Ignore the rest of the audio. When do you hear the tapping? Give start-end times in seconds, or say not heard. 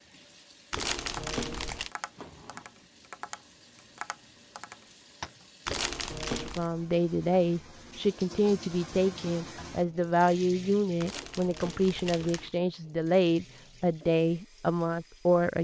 0.9-5.8.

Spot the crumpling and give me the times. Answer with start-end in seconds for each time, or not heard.
0.7-1.9, 5.7-6.7, 11.0-12.5.